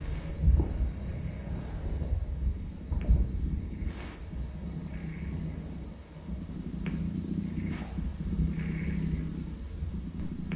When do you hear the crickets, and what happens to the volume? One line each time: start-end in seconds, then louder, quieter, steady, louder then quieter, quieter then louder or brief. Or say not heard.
0.0-10.5 quieter.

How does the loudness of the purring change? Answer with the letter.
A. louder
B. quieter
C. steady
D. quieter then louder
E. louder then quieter
A.